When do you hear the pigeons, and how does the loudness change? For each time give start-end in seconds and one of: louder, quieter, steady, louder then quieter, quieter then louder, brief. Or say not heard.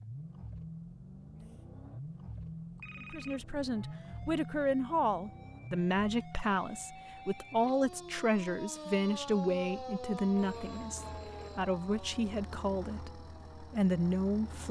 not heard.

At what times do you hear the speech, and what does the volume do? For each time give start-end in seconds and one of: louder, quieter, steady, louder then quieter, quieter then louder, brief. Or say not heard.
3.1-14.6 steady.